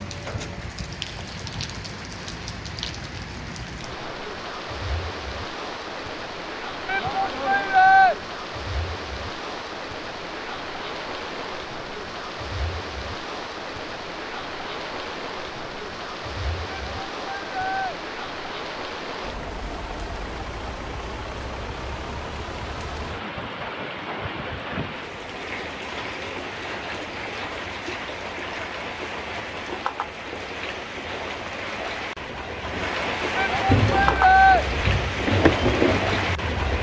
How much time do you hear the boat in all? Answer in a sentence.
You can hear the boat for 3 seconds altogether.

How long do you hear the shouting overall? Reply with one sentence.
The shouting can be heard for 4 seconds in total.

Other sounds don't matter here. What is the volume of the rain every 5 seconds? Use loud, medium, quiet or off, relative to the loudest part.
medium, medium, medium, medium, medium, medium, loud, loud.